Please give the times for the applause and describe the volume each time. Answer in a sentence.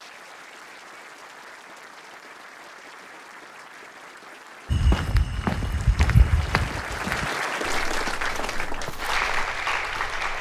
You can hear the applause from 0.0 to 10.3 s, getting louder.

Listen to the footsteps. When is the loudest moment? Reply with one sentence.
The volume of the footsteps peaks at 6 seconds.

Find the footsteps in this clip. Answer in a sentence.
You can hear the footsteps from 4.7 to 10.2 s.